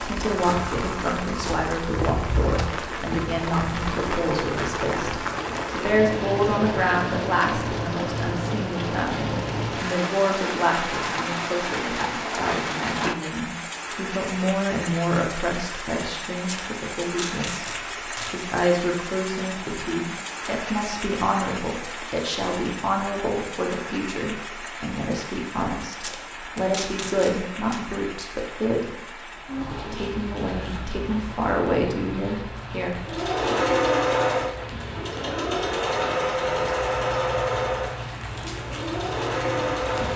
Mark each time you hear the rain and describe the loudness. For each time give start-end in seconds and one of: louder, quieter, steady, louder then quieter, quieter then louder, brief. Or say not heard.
0.0-40.1 quieter.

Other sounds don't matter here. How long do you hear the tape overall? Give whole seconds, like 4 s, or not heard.
4 s.